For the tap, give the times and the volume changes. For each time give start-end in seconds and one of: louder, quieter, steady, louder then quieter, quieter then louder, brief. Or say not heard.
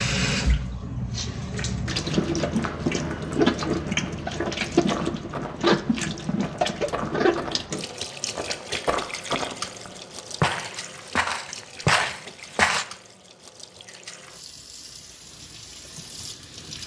0.0-16.8 quieter.